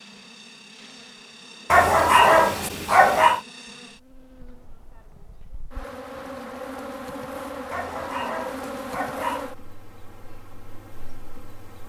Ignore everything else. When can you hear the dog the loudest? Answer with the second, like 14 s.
2 s.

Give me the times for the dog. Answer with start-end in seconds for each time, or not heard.
1.7-3.4, 7.7-9.4.